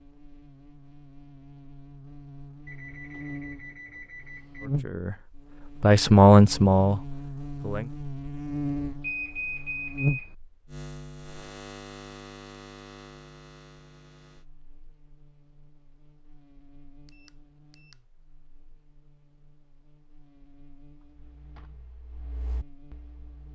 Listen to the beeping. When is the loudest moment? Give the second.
9 s.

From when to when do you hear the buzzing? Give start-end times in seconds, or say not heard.
0.0-23.5.